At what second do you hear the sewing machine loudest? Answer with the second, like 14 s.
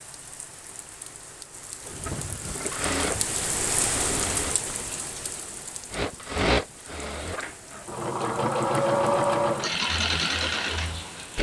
9 s.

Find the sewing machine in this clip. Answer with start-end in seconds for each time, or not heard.
1.9-4.6, 5.9-11.3.